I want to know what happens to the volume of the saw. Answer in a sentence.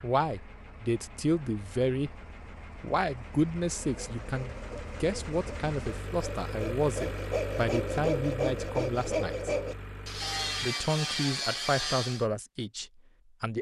The loudness of the saw goes up.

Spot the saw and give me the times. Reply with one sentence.
You can hear the saw from 3.8 to 12.2 s.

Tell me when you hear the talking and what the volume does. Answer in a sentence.
You can hear the talking briefly from 0.0 to 2.1 s; from 2.8 to 9.6 s, at a steady volume; and briefly from 10.6 to 13.5 s.